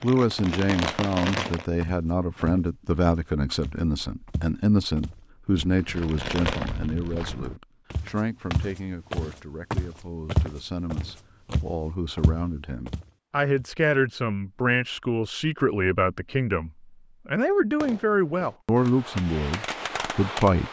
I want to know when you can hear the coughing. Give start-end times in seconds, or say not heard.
not heard.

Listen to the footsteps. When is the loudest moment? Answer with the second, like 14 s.
10 s.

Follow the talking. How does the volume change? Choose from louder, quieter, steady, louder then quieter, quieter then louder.
quieter then louder.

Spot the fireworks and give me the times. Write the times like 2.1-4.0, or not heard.
0.0-1.6, 5.8-7.3, 17.8-20.6.